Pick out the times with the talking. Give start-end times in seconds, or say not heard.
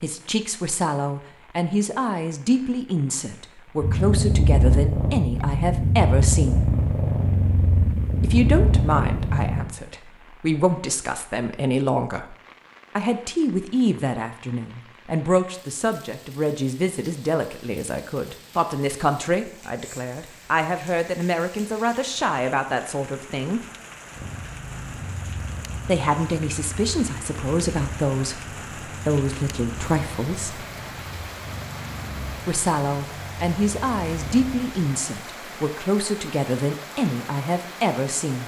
0.0-6.7, 8.2-12.3, 12.9-23.6, 25.9-30.6, 32.5-38.4.